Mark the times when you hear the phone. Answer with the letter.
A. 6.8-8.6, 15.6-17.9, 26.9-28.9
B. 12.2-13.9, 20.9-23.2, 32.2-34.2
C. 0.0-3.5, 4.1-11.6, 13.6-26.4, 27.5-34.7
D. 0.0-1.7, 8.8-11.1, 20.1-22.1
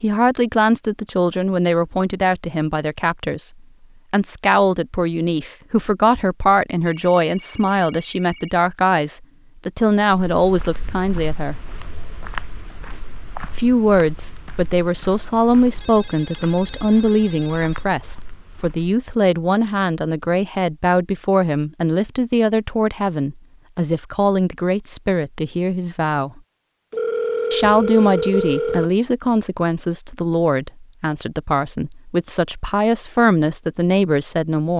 A.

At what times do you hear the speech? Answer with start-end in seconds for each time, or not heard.
0.0-3.5, 4.1-11.6, 13.6-26.4, 27.5-34.7.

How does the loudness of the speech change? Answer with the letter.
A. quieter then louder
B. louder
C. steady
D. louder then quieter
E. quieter
C.